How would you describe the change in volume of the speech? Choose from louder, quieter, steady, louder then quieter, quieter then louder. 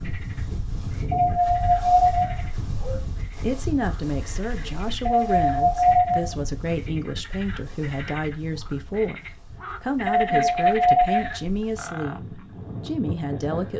steady.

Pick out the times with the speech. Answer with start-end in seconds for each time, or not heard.
3.4-13.7.